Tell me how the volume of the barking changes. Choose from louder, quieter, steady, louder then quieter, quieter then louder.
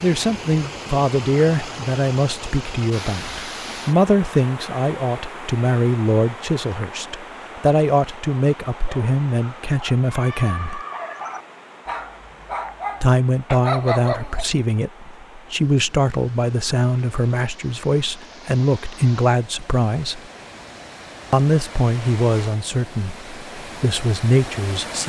louder.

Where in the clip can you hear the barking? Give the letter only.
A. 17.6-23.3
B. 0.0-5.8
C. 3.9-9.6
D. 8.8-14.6
D.